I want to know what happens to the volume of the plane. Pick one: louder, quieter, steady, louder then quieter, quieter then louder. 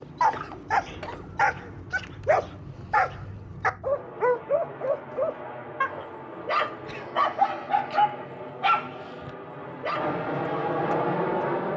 louder.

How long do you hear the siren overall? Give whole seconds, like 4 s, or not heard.
not heard.